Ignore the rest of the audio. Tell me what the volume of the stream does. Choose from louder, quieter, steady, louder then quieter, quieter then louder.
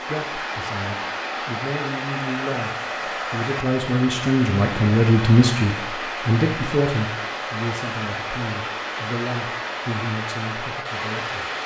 steady.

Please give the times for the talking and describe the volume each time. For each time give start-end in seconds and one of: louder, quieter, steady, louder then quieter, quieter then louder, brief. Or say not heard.
0.1-2.7 brief
3.3-11.4 quieter.